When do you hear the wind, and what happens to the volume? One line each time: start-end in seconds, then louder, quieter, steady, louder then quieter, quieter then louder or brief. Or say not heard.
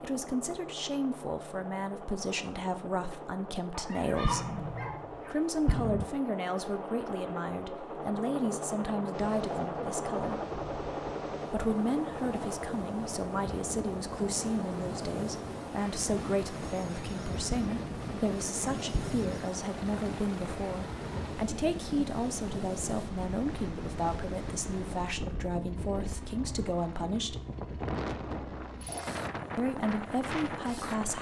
9.1-31.1 louder.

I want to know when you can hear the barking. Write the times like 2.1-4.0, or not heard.
3.7-5.8.